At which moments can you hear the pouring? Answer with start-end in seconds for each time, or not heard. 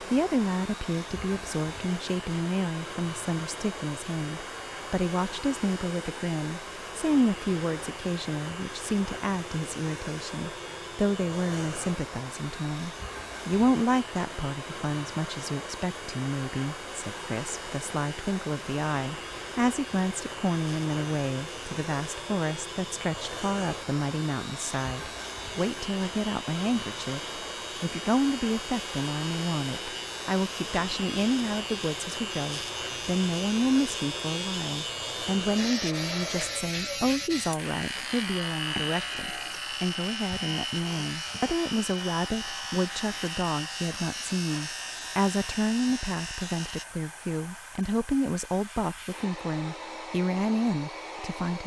not heard.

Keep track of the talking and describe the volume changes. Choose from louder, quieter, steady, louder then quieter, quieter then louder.
steady.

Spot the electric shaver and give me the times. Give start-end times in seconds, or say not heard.
0.0-46.9.